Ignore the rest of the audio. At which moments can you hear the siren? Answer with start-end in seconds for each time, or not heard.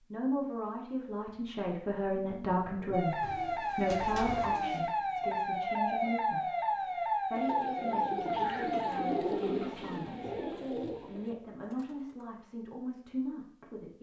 2.9-10.6.